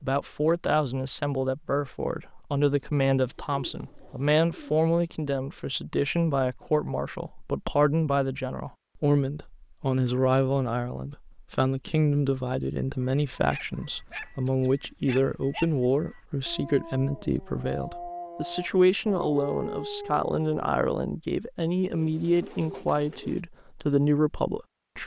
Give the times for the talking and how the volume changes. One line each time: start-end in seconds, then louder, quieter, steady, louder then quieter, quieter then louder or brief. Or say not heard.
0.0-25.0 steady.